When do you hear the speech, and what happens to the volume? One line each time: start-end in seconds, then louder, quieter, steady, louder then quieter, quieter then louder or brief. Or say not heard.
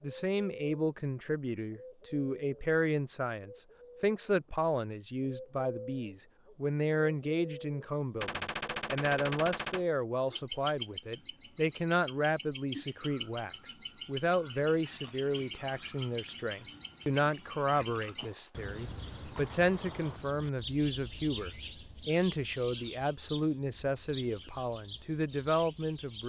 0.0-26.2 steady.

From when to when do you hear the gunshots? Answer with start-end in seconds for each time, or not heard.
8.2-9.8, 18.1-18.7, 19.4-20.2.